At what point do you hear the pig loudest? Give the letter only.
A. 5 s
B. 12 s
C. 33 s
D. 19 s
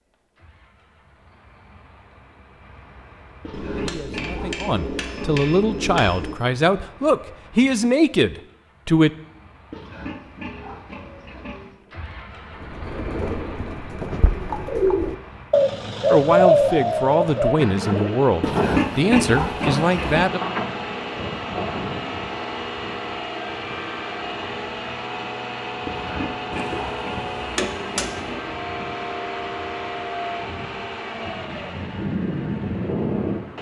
D.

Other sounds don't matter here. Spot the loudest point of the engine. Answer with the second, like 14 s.
33 s.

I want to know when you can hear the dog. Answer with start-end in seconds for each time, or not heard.
not heard.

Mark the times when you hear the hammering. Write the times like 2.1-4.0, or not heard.
3.5-6.3, 26.5-28.1.